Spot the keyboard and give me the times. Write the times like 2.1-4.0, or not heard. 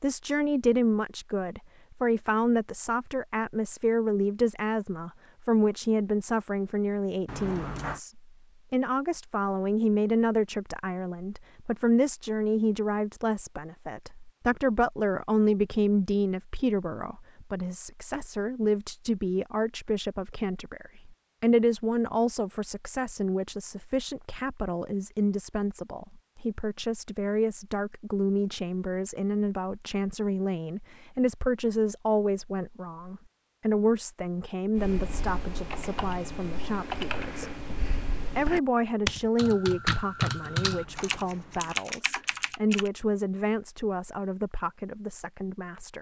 34.8-42.9.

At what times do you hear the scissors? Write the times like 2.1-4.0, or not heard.
7.2-8.0, 40.4-41.8.